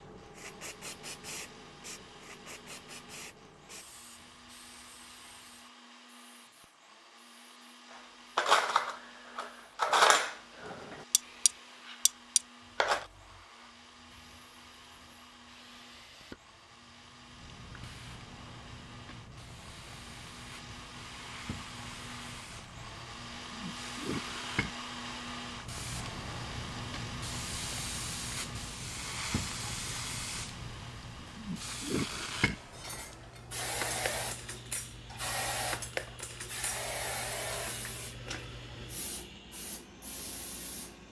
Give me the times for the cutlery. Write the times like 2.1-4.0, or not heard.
8.3-13.1, 32.7-37.9.